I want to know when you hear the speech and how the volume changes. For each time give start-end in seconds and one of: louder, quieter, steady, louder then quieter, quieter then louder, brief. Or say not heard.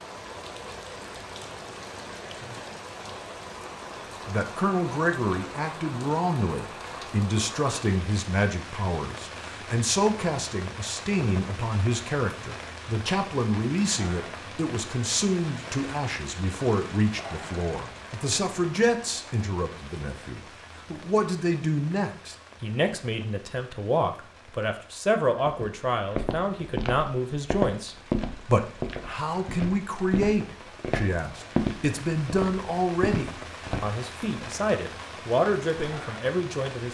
4.2-36.8 steady.